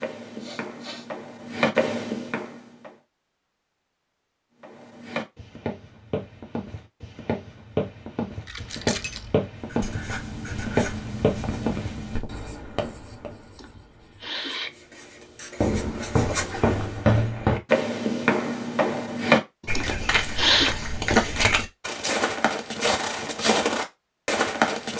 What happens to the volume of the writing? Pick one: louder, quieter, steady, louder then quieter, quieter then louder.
quieter then louder.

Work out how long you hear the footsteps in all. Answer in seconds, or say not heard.
20 s.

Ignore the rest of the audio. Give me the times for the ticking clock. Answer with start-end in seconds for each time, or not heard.
not heard.